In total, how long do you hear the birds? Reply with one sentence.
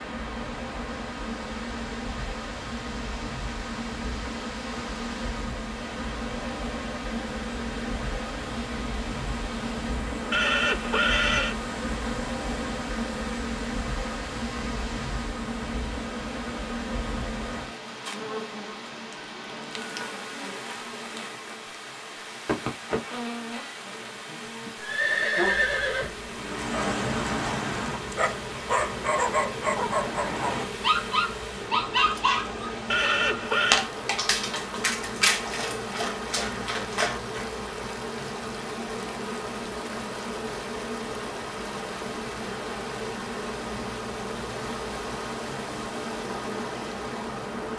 You can't hear the birds here.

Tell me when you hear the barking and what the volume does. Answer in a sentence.
You can hear the barking from 26.4 to 37.5 s, at a steady volume.